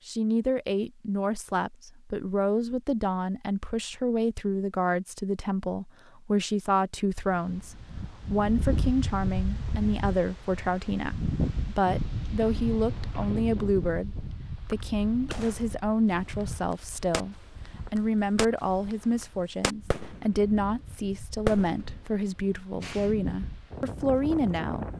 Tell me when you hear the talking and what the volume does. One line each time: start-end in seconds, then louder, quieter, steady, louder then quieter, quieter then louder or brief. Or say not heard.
0.1-24.9 steady.